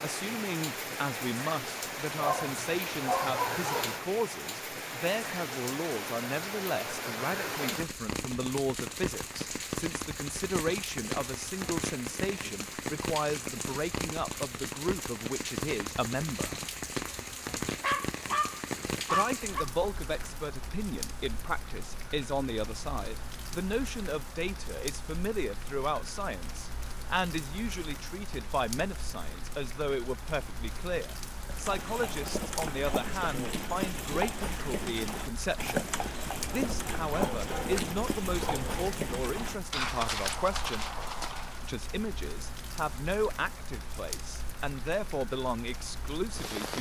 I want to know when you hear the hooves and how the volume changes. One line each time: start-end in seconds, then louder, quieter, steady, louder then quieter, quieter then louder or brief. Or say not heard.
31.4-41.7 steady.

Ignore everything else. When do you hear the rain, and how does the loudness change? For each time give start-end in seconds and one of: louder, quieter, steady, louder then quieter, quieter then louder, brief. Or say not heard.
0.0-46.7 quieter.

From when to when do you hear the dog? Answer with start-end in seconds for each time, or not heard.
2.2-4.0, 17.8-19.7, 36.6-38.9.